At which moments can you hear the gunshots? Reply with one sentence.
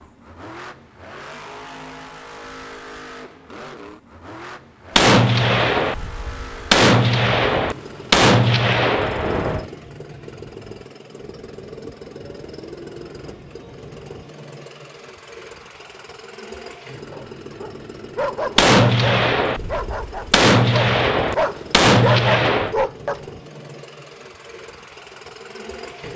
You can hear the gunshots from 5.0 to 9.7 s and from 18.6 to 22.8 s.